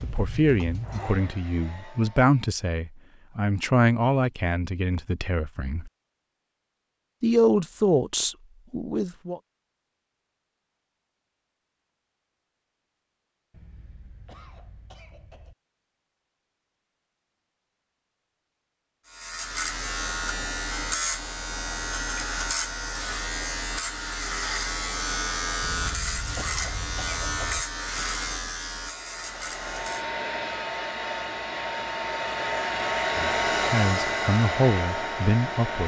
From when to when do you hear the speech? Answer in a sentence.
You can hear the speech from 0.0 to 5.9 s, from 7.2 to 9.4 s and from 33.1 to 35.8 s.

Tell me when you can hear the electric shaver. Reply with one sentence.
The electric shaver can be heard from 19.1 to 30.1 s.